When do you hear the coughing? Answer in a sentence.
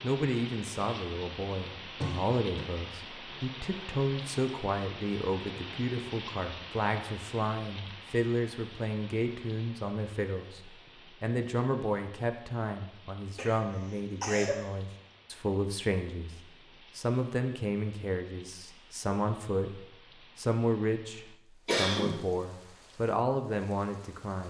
The coughing can be heard from 2.0 to 2.6 s, from 13.3 to 14.6 s and from 21.6 to 22.1 s.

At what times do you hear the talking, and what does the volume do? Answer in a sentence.
You can hear the talking from 0.0 to 24.4 s, at a steady volume.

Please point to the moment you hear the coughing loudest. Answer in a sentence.
The loudest moment of the coughing is at 22 seconds.